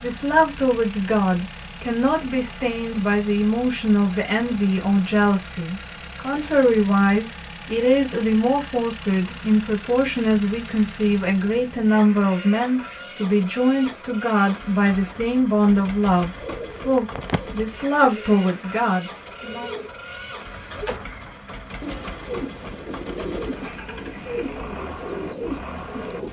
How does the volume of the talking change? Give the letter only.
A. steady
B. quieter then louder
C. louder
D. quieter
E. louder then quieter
A.